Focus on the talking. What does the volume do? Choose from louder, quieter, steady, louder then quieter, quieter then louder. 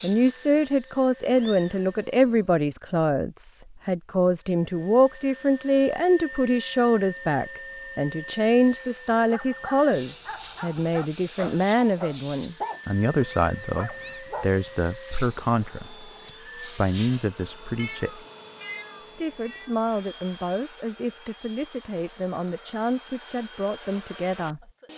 quieter.